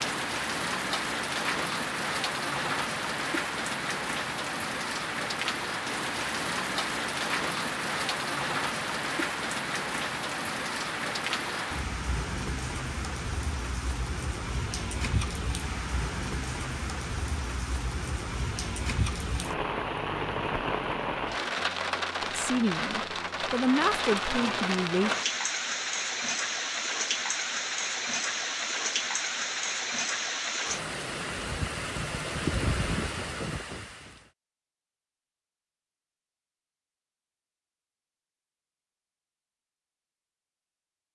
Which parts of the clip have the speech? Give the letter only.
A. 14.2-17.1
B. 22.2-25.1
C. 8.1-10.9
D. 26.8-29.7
B.